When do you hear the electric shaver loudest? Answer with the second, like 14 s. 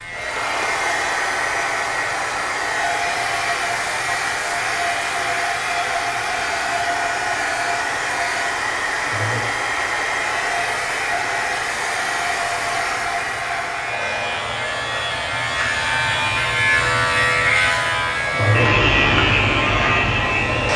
19 s.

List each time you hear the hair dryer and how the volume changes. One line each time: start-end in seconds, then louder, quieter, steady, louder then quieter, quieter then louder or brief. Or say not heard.
0.0-20.7 quieter.